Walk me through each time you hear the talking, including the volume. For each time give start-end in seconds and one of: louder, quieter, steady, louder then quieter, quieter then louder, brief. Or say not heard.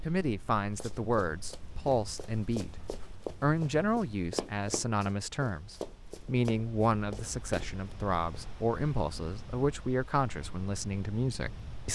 0.0-11.9 steady.